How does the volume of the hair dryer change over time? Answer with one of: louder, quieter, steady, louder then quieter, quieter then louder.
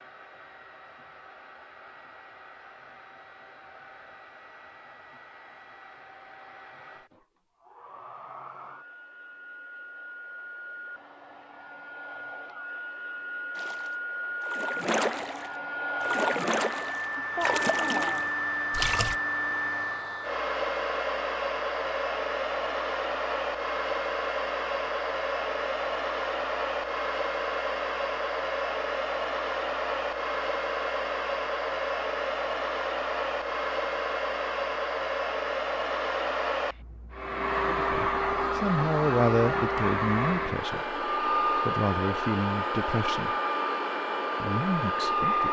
louder.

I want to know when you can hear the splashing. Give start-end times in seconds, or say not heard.
13.6-19.1.